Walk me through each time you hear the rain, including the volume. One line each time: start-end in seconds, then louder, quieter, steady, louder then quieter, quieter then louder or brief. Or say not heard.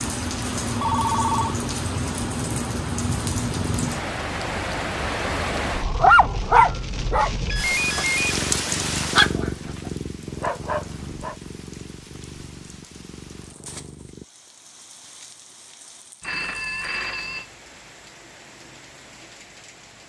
0.0-20.0 quieter.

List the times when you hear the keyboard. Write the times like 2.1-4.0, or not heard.
not heard.